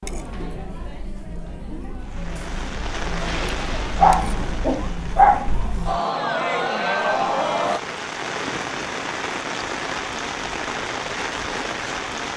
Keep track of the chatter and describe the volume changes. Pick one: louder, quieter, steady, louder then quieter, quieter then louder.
louder.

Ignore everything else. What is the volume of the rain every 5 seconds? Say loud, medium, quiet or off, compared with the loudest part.
medium, loud, loud.